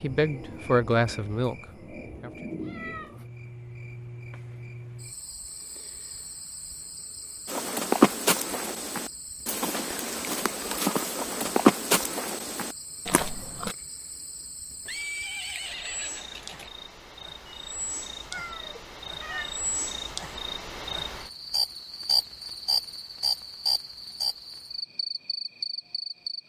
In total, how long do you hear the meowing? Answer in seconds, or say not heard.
2 s.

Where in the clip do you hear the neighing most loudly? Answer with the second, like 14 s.
15 s.